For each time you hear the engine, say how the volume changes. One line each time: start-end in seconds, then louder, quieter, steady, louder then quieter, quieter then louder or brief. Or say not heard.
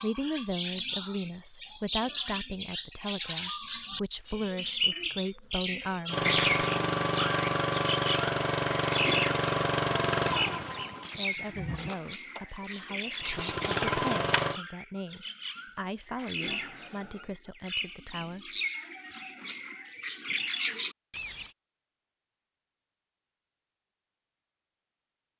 6.0-14.6 quieter then louder.